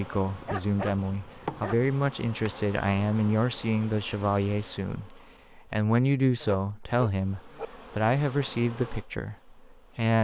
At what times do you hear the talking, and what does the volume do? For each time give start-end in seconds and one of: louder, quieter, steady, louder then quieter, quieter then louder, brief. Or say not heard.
0.0-10.1 steady.